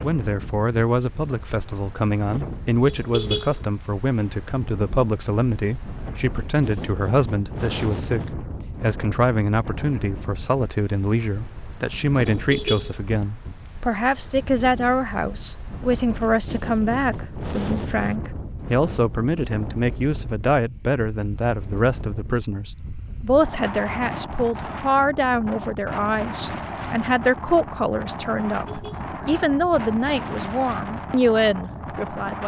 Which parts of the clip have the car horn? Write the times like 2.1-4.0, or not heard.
2.9-3.6, 12.2-13.0, 28.6-29.1.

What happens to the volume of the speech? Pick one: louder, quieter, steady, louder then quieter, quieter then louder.
steady.